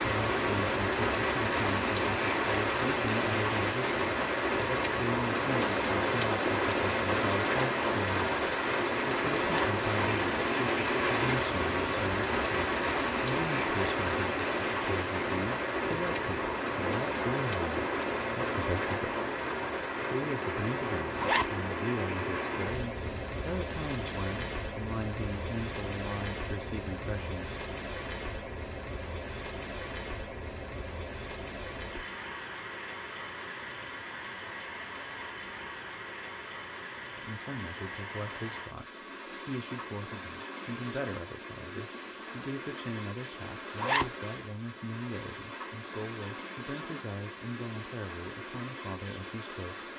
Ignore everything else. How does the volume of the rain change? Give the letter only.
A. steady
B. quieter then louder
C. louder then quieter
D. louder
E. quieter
E.